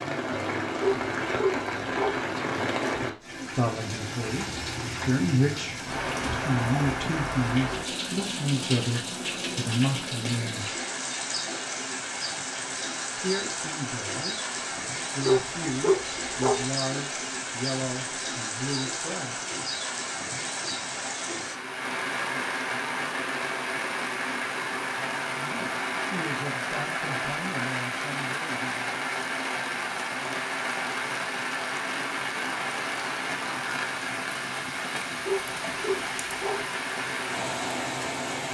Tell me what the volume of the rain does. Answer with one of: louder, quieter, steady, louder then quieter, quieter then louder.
steady.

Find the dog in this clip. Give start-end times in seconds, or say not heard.
0.8-2.1, 15.2-16.6, 35.2-36.6.